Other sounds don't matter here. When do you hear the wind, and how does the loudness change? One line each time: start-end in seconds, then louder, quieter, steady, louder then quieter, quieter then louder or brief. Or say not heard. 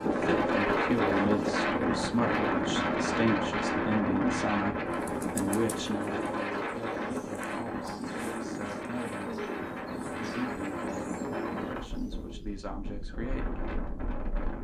0.0-14.5 quieter.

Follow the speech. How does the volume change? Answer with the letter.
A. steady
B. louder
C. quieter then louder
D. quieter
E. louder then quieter
D.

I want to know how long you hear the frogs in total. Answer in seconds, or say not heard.
not heard.